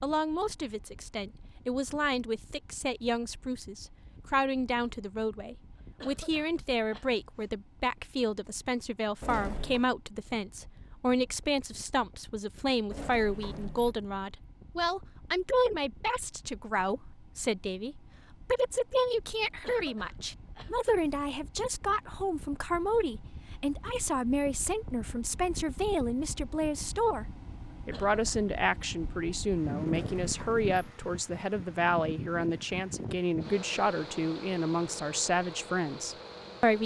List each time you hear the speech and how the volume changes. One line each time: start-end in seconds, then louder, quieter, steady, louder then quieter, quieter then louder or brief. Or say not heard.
0.0-36.8 steady.